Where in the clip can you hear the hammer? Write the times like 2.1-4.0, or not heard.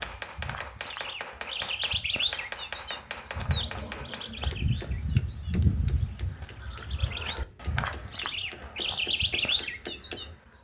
0.0-10.4.